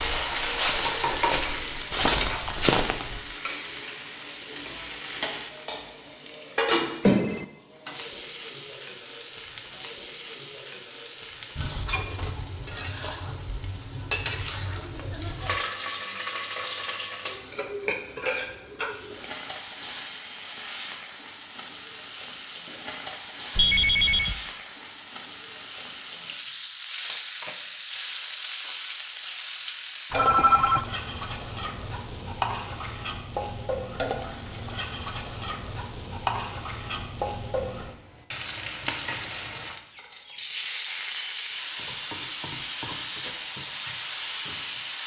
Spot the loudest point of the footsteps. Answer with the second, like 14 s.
2 s.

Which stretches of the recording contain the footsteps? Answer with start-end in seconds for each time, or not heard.
0.0-3.2.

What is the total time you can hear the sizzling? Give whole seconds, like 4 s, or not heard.
45 s.